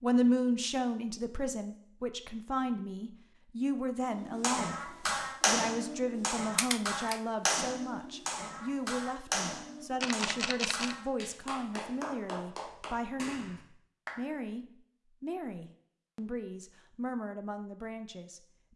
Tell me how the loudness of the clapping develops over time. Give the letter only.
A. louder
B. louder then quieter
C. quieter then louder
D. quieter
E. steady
D.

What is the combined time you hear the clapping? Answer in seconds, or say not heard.
10 s.